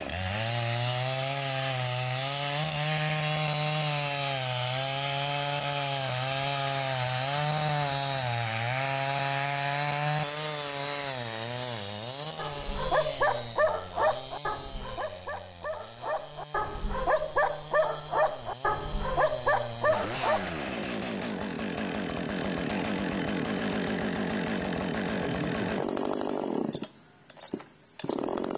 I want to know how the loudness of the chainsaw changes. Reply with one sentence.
The loudness of the chainsaw goes down, then up.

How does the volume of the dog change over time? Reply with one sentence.
The volume of the dog goes down, then up.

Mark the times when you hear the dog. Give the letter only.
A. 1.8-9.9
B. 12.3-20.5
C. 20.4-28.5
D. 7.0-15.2
B.